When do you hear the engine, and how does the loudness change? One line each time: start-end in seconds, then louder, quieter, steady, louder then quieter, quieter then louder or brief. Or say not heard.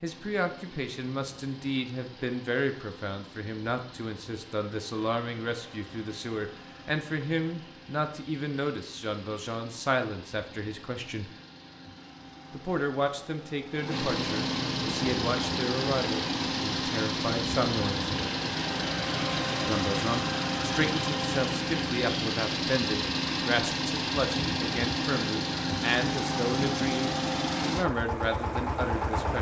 0.0-29.3 louder.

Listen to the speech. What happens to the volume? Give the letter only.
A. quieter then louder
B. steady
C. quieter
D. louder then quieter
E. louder
B.